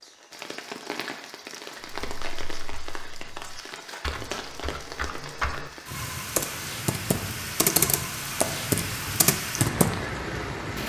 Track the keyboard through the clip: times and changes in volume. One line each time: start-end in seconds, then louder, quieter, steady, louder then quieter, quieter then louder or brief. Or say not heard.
1.9-9.9 louder.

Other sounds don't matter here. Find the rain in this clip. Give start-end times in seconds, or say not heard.
0.0-10.8.